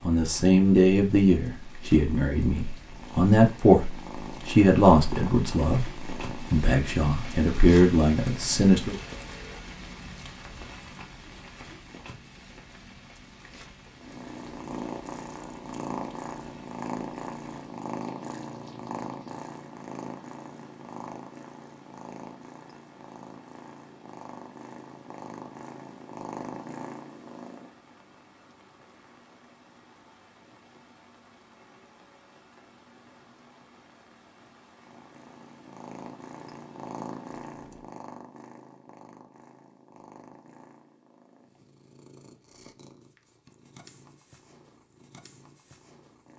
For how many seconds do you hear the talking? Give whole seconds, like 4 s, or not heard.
9 s.